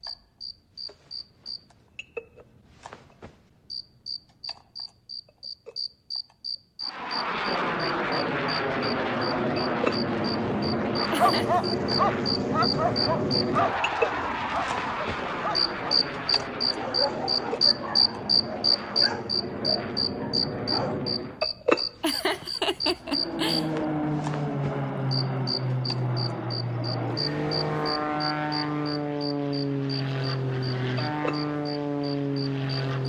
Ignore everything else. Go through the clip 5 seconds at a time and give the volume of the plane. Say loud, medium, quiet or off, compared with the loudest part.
off, loud, loud, medium, loud, loud, loud.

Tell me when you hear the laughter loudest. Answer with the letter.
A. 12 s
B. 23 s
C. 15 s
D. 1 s
B.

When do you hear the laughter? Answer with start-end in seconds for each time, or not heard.
11.1-11.6, 22.0-23.7.